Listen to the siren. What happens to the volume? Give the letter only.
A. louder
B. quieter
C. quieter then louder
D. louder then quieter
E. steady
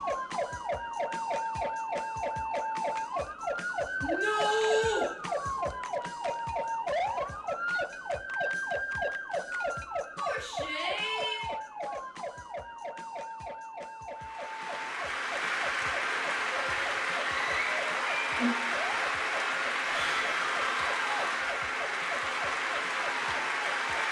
B.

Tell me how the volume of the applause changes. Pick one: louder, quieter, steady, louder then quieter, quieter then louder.
steady.